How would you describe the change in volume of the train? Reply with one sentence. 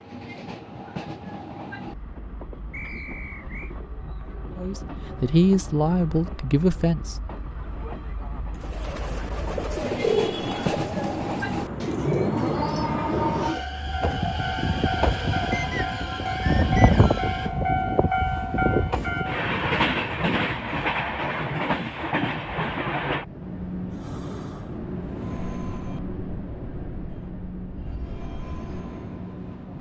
The volume of the train goes up, then down.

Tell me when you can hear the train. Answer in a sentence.
The train can be heard from 0.0 to 29.7 s.